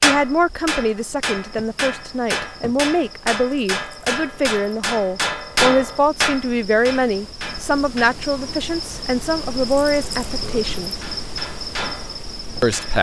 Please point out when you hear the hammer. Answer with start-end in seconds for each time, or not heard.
0.0-8.2, 10.8-12.9.